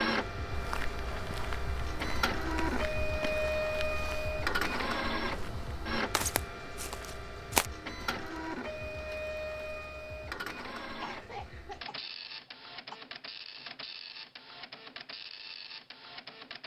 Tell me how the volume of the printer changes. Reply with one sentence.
The loudness of the printer goes down.